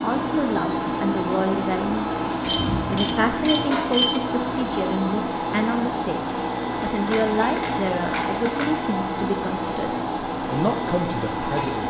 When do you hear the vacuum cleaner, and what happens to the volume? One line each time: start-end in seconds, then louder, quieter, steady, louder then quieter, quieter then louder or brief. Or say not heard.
0.0-11.8 steady.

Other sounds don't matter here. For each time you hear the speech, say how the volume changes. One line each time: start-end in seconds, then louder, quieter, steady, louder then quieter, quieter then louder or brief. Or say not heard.
0.0-11.8 steady.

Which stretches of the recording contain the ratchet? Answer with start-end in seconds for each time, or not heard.
2.4-4.2, 6.9-8.8.